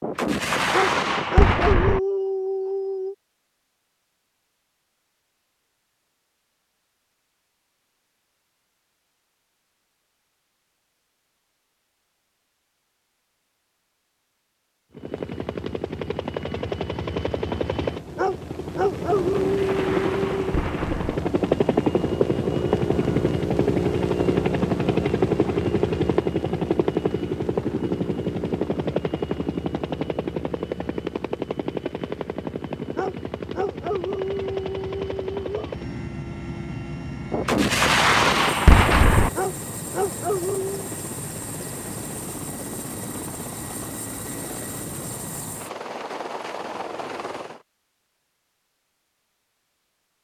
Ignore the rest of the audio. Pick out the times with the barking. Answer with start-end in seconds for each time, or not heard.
0.7-3.1, 18.1-20.6, 33.0-35.8, 39.4-40.9.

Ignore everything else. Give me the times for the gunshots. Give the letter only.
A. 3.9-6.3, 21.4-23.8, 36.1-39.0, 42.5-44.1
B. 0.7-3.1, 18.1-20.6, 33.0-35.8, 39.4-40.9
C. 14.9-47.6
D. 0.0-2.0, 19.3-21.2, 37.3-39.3
D.